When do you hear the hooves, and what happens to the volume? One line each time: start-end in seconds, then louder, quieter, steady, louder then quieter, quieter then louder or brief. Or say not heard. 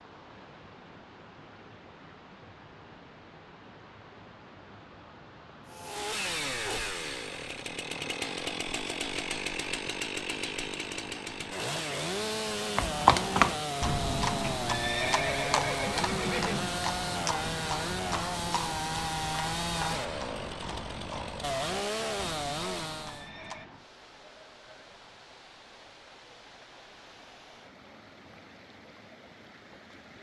12.8-23.7 quieter.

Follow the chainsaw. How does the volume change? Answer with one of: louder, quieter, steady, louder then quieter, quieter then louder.
steady.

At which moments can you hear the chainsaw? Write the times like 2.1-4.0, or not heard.
5.7-23.3.